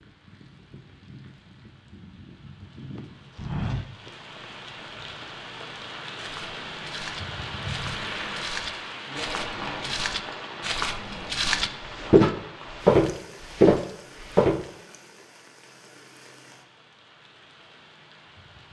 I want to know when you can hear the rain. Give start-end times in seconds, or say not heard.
0.0-18.6.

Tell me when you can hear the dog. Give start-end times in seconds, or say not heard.
not heard.